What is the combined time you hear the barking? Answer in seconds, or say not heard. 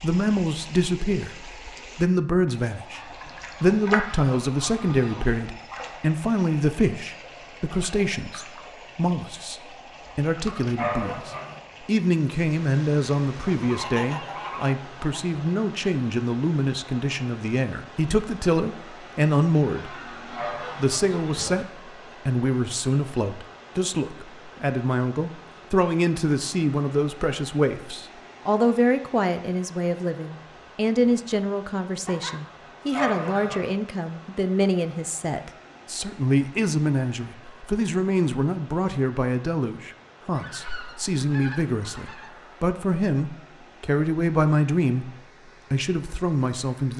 2 s.